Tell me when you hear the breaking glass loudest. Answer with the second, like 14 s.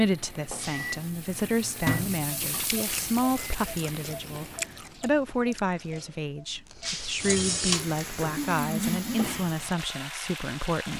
7 s.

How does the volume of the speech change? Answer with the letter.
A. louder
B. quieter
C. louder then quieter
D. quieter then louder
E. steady
E.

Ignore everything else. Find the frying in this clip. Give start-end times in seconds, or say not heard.
0.0-4.7, 7.2-10.9.